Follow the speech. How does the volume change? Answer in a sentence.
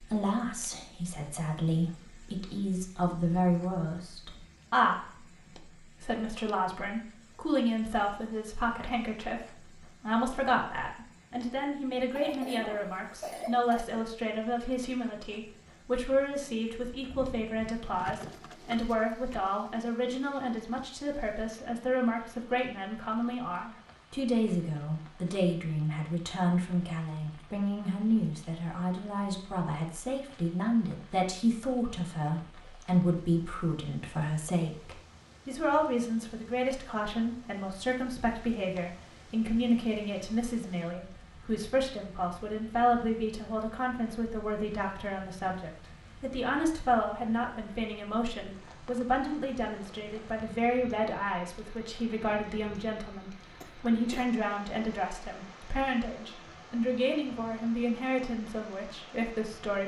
The loudness of the speech stays about the same.